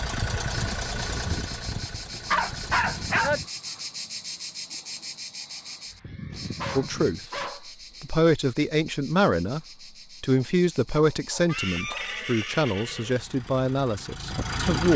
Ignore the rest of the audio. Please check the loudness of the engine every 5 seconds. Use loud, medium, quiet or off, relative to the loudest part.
loud, off, loud.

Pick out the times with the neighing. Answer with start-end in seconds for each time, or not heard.
2.6-3.5, 6.0-7.2, 11.4-13.2.